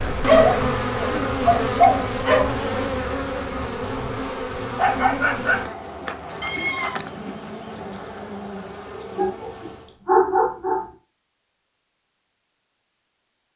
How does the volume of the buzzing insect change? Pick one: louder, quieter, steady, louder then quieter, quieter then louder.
quieter.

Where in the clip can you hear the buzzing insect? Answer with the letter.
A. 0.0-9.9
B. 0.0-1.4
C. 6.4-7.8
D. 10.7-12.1
A.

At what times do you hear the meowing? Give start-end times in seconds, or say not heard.
6.4-7.8.